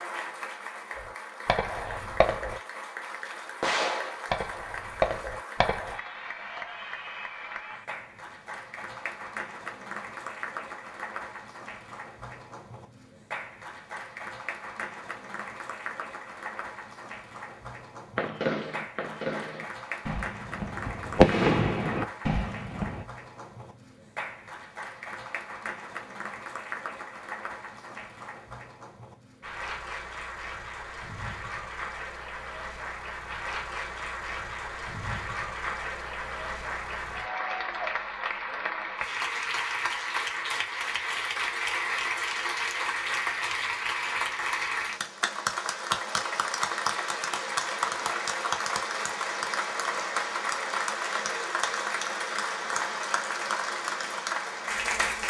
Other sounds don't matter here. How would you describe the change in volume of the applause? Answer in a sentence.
The loudness of the applause goes up.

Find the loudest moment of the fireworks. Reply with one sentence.
The volume of the fireworks peaks at 21 seconds.